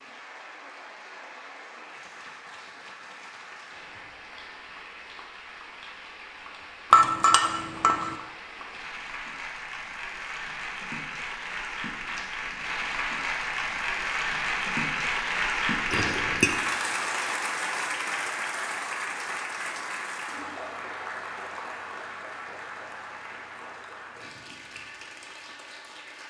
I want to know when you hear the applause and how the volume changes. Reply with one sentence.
The applause can be heard from 0.0 to 26.2 s, getting louder then quieter.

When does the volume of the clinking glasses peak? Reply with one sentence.
The loudest moment of the clinking glasses is at 7 seconds.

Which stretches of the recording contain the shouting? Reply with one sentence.
You can't hear the shouting here.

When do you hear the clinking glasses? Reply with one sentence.
You can hear the clinking glasses from 6.9 to 8.2 s and from 15.9 to 16.5 s.